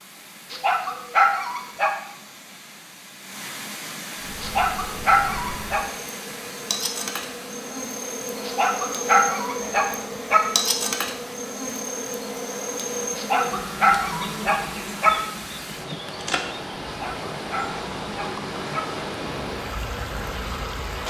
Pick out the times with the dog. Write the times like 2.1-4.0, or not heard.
0.5-1.9, 4.4-5.8, 8.4-10.4, 13.2-15.1, 16.9-18.8.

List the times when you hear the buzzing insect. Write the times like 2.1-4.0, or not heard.
4.2-20.9.